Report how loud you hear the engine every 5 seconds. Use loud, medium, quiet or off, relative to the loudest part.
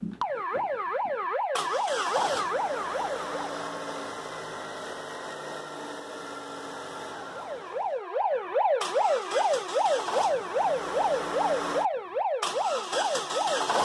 loud, medium, loud.